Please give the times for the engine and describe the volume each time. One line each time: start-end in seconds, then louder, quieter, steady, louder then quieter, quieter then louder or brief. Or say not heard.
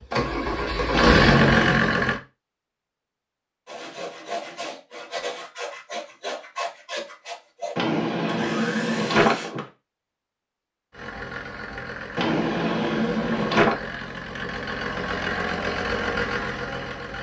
0.0-2.2 brief
10.9-17.1 louder.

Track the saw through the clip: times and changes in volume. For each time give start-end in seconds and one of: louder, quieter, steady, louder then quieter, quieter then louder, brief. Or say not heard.
3.6-9.5 steady.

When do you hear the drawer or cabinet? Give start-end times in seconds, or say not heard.
0.9-1.9, 7.8-9.7, 12.2-13.8.